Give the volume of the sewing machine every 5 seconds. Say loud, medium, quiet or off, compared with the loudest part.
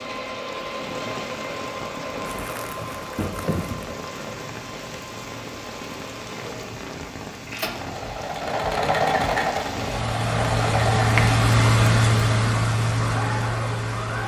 medium, loud, loud.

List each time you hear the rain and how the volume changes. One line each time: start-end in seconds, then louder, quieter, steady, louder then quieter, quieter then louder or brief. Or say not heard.
0.0-14.2 louder.